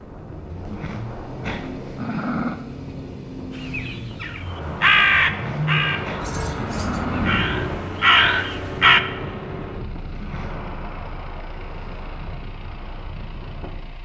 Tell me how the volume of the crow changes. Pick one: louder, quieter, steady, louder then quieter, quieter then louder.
quieter then louder.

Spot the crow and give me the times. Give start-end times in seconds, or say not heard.
3.5-9.0.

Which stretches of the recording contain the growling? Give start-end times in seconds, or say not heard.
0.5-2.6, 5.3-7.5, 10.0-10.6.